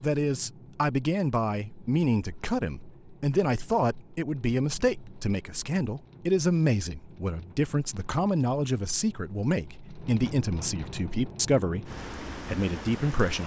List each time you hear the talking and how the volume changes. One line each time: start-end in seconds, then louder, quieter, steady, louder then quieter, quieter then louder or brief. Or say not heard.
0.0-13.4 steady.